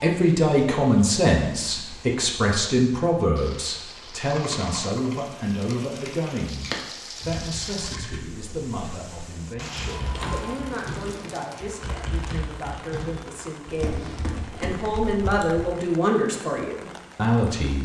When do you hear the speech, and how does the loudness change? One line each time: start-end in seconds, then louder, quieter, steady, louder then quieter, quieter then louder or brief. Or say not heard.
0.0-17.8 quieter then louder.